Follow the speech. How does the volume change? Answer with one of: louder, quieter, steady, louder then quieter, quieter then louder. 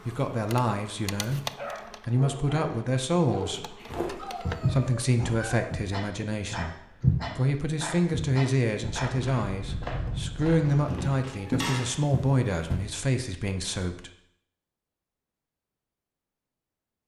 steady.